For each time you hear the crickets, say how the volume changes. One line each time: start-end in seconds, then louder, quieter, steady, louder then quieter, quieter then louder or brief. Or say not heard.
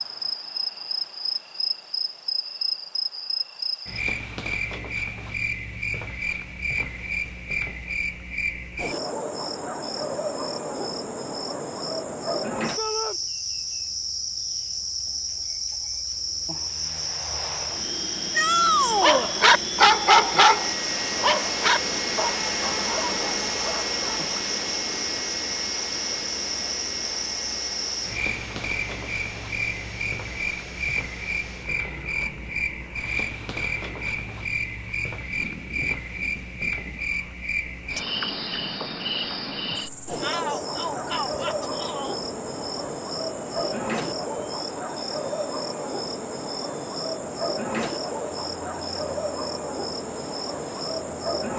0.0-51.5 steady.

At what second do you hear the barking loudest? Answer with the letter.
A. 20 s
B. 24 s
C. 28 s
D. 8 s
A.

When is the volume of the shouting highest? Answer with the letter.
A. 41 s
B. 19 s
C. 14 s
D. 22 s
B.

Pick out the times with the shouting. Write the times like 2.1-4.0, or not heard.
12.8-13.2, 18.3-19.3, 40.2-42.1.